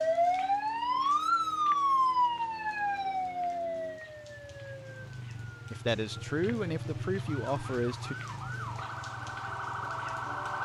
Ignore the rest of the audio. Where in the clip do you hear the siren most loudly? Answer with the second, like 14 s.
2 s.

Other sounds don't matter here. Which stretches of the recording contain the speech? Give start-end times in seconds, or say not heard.
5.7-8.2.